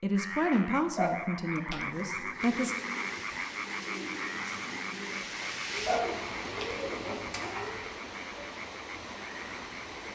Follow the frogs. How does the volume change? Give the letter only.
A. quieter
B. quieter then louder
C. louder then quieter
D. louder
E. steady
A.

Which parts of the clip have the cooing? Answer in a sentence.
The cooing can be heard from 1.8 to 7.9 s.